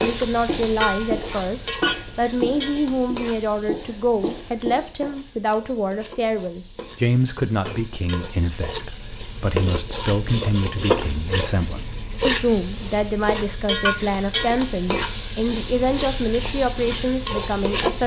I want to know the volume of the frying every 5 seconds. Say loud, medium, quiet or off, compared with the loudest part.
loud, medium, loud, loud.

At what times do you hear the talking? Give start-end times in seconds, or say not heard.
0.0-18.0.